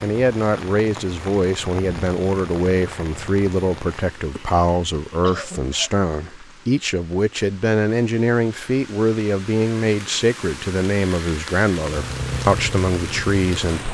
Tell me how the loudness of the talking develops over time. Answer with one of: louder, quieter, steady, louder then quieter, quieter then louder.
steady.